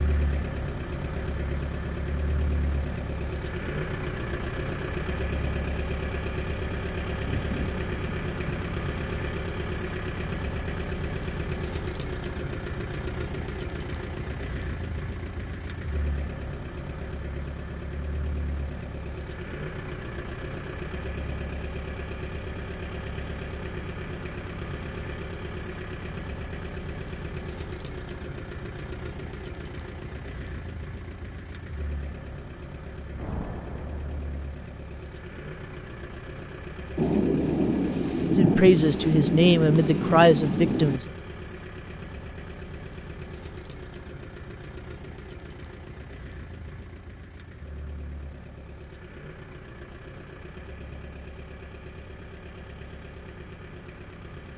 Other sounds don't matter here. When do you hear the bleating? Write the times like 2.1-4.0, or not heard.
not heard.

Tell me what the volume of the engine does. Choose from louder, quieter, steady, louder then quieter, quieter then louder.
quieter.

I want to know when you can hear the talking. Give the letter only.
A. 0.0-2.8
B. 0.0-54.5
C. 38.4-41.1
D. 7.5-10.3
C.